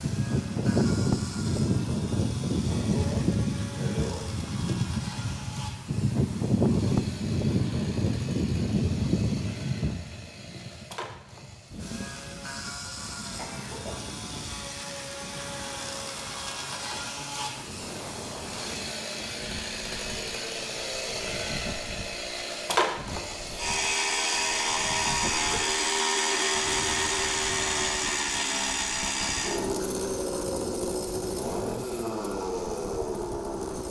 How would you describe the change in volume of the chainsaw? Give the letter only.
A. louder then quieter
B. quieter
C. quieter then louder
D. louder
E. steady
D.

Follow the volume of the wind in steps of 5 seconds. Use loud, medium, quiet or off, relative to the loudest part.
loud, loud, quiet, quiet, quiet, quiet, quiet.